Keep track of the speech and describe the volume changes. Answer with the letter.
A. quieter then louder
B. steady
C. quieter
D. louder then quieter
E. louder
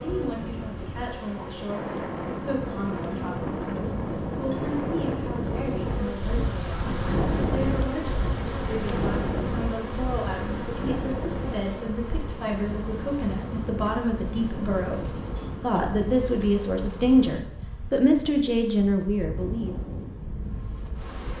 E.